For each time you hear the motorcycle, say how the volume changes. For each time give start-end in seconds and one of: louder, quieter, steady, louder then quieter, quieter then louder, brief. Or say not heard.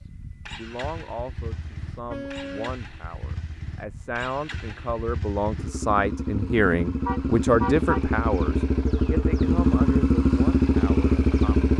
0.0-11.7 louder.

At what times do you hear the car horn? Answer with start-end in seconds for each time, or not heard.
1.5-2.8, 7.0-8.1.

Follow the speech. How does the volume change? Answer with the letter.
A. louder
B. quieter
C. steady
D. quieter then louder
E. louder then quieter
E.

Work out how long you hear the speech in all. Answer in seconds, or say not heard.
12 s.